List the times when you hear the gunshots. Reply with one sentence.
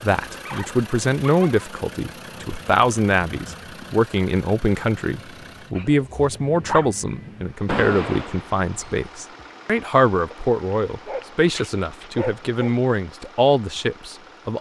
The gunshots can be heard from 7.7 to 9.0 s.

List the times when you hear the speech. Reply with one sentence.
You can hear the speech from 0.0 to 14.5 s.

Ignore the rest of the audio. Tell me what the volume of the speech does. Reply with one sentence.
The loudness of the speech stays about the same.